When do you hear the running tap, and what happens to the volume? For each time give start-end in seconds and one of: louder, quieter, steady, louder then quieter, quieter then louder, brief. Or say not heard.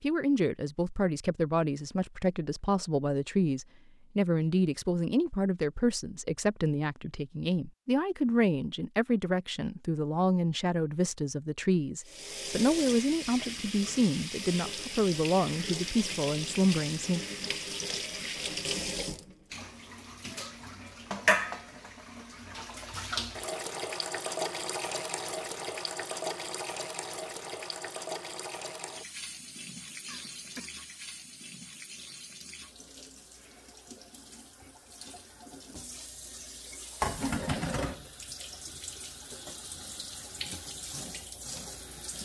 12.1-42.2 quieter then louder.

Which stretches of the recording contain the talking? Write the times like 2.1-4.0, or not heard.
0.0-17.2.